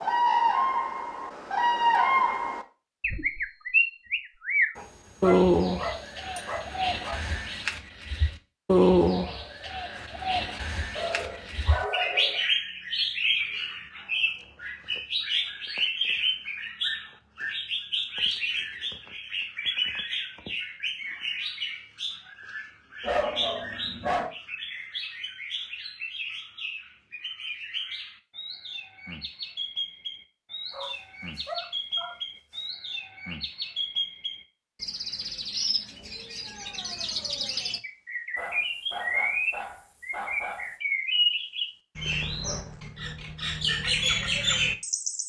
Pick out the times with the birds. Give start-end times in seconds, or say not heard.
0.0-45.2.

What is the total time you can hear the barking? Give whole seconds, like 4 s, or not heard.
9 s.